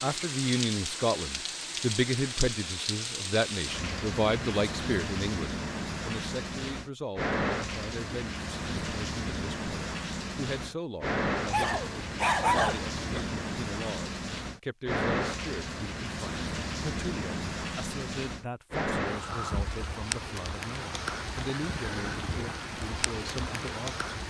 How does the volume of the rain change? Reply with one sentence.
The loudness of the rain stays about the same.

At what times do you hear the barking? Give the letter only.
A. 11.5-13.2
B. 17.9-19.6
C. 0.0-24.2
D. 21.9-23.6
A.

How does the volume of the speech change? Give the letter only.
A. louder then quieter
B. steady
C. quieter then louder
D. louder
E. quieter
E.